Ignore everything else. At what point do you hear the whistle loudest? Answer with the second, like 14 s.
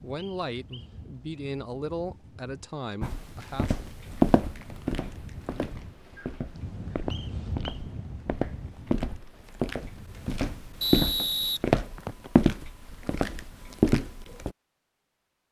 11 s.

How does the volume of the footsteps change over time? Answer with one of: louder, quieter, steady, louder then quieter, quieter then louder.
quieter then louder.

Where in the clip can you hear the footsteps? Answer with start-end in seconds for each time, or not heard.
3.0-14.5.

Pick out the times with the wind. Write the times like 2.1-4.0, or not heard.
0.0-10.9.